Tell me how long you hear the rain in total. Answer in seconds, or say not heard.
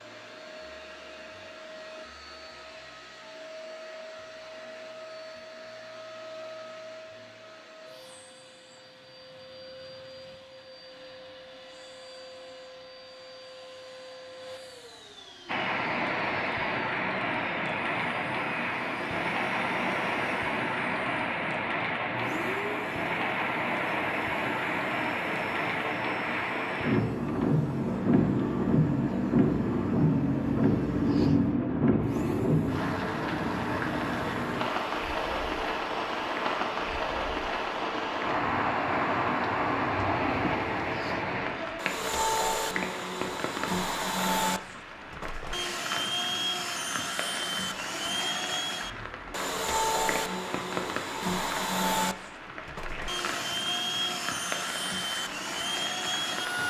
41 s.